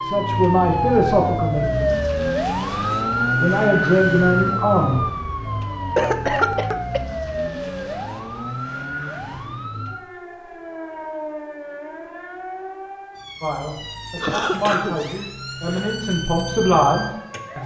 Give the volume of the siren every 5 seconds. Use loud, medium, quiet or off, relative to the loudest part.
loud, medium, quiet, medium.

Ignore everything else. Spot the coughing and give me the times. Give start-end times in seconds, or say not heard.
6.0-7.0, 14.2-15.9.